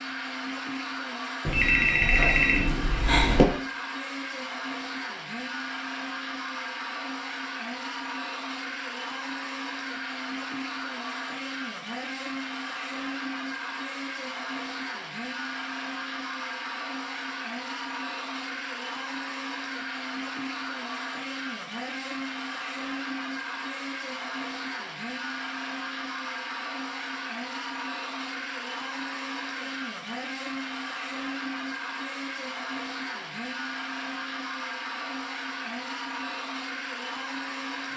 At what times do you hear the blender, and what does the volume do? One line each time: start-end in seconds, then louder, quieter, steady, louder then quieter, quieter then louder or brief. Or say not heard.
0.0-37.9 steady.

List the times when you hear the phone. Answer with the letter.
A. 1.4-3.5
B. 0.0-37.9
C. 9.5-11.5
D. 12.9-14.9
A.